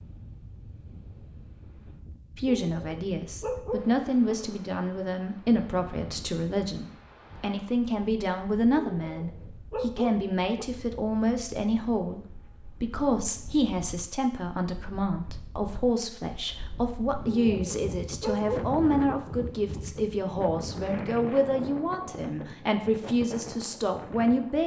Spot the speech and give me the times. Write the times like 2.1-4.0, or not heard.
2.4-24.6.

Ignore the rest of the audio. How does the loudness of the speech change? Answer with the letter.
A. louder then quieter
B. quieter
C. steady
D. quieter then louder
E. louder
C.